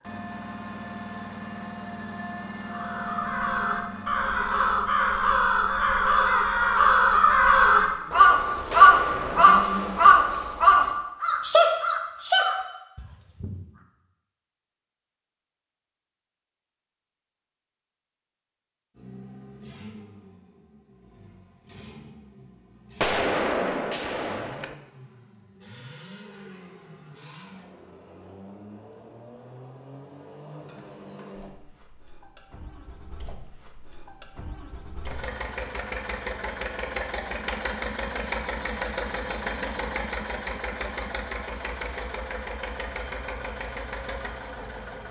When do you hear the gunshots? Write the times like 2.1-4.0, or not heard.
8.7-10.2, 23.0-24.8.